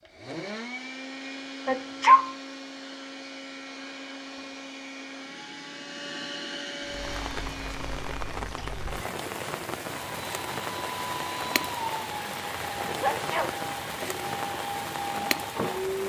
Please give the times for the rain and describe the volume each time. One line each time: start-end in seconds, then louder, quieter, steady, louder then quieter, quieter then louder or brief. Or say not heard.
6.8-16.0 steady.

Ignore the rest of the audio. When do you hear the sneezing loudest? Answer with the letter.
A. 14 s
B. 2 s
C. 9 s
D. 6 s
B.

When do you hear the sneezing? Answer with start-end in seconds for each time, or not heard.
1.6-2.2, 8.3-8.8, 12.8-13.7.